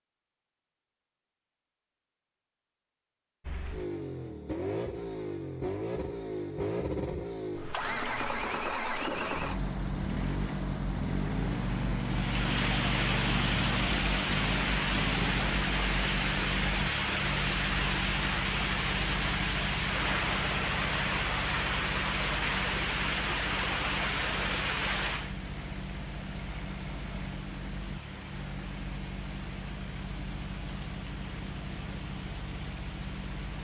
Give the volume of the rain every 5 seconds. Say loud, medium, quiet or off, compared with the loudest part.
off, off, loud, loud, loud, quiet, quiet.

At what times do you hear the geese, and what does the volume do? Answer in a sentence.
You can't hear the geese here.